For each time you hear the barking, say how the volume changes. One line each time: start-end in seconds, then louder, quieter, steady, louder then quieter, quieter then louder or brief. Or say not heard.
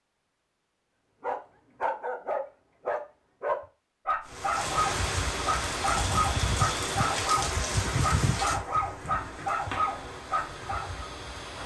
1.2-11.1 steady.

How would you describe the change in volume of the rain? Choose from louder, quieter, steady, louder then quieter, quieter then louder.
quieter.